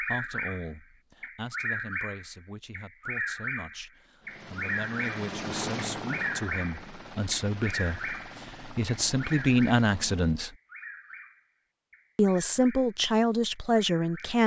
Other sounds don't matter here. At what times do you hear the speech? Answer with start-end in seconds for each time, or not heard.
0.0-10.5, 12.2-14.4.